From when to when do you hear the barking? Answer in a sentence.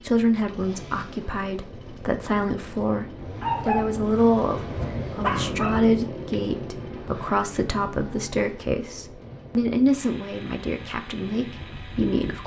The barking can be heard from 3.4 to 5.8 s.